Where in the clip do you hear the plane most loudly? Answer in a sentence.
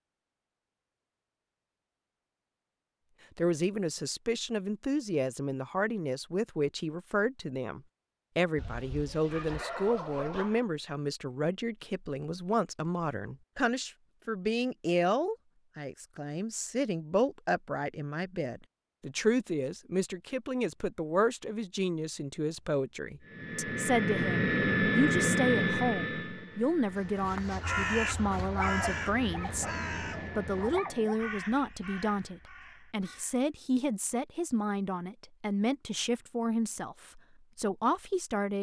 The volume of the plane peaks at 25 seconds.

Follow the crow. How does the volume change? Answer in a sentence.
The volume of the crow goes down.